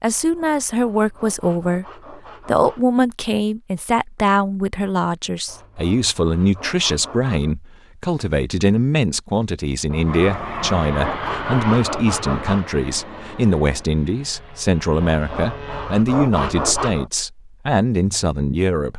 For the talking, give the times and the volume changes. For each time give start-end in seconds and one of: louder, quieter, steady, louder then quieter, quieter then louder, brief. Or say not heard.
0.0-1.9 brief
2.5-18.9 steady.